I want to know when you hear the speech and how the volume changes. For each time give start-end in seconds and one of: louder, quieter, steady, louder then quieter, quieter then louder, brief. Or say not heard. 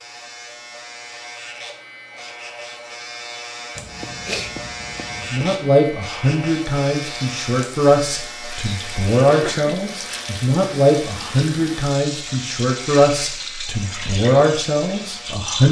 5.2-15.6 steady.